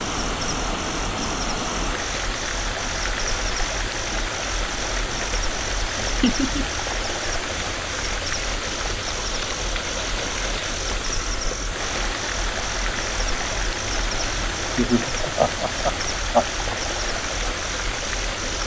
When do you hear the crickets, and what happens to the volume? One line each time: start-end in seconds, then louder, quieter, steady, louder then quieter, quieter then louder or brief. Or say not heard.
0.0-18.6 steady.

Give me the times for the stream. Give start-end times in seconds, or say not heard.
0.0-18.6.